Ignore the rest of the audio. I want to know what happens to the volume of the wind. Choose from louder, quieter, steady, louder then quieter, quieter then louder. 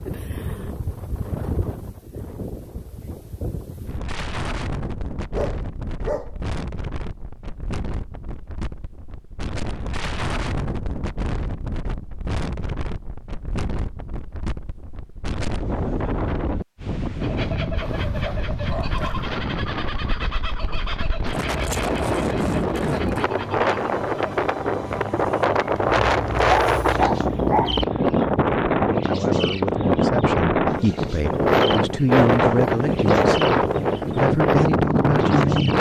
louder.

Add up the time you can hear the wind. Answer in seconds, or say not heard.
36 s.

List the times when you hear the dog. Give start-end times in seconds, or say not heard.
5.3-6.3, 17.8-19.3, 25.9-27.9.